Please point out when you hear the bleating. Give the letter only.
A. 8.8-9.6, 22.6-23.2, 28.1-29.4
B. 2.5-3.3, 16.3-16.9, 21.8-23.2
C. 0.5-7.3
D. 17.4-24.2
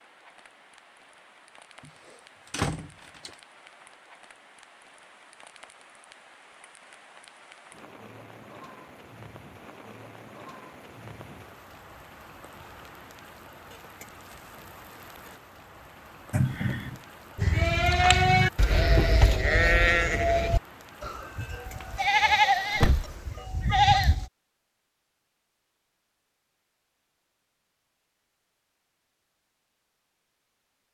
D.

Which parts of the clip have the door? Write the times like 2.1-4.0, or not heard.
2.5-3.3, 16.3-16.9, 21.8-23.2.